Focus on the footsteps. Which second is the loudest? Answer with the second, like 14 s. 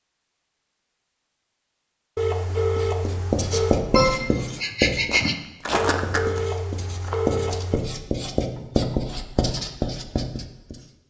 6 s.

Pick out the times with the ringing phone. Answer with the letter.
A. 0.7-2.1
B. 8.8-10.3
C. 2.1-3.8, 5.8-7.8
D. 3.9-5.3
C.